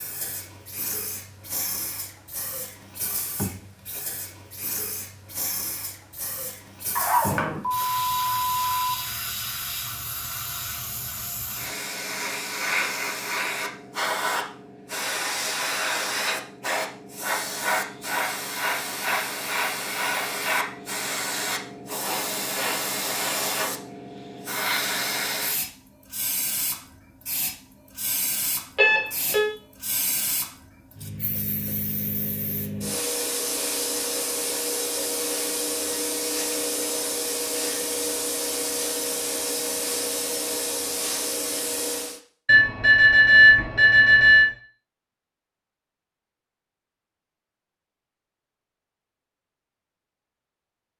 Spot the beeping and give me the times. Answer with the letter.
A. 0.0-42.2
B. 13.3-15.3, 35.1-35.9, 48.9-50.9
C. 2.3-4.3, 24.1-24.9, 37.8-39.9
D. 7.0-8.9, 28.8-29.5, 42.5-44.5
D.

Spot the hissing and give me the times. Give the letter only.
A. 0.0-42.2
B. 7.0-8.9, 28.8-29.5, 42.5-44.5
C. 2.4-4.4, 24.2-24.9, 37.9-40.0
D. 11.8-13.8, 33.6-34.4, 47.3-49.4
A.